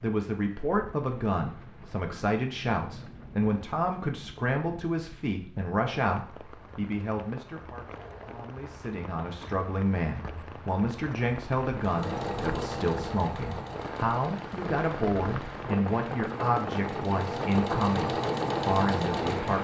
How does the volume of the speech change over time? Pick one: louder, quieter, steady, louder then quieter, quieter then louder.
steady.